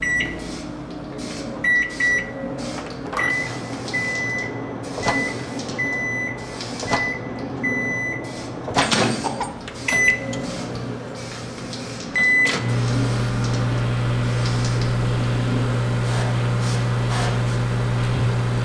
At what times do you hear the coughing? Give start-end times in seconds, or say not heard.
8.8-9.5.